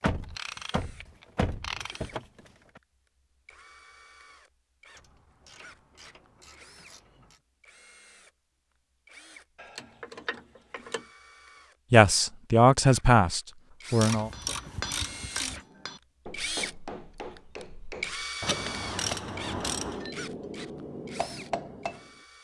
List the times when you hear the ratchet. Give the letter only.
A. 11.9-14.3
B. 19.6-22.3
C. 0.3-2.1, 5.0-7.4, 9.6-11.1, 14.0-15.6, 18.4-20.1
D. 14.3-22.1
C.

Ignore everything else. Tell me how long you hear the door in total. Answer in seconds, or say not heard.
3 s.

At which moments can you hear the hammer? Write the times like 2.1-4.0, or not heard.
14.3-22.1.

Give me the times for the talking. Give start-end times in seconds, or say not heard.
11.9-14.3.